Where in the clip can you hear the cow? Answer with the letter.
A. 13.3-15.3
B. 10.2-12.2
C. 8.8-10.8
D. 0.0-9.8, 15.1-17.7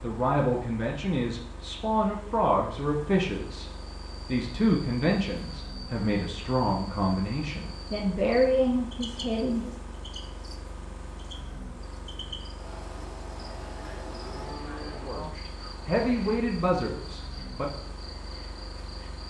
A.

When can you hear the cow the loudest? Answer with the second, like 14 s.
15 s.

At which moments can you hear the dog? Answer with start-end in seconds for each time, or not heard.
not heard.